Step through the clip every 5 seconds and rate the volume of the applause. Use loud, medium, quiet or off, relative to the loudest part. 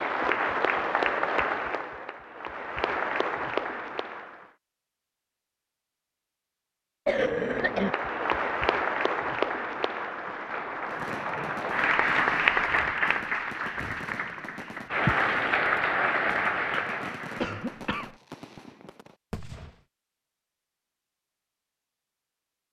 loud, loud, loud, loud, off.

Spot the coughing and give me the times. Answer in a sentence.
The coughing can be heard from 7.0 to 8.0 s and from 17.4 to 18.1 s.